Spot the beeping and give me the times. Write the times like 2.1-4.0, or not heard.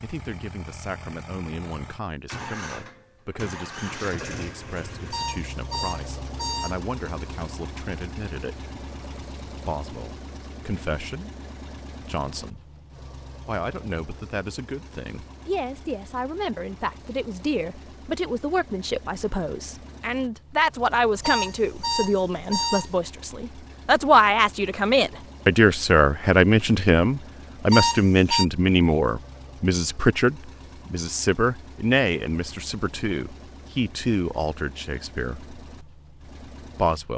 5.1-6.8, 21.2-22.9, 27.7-28.4.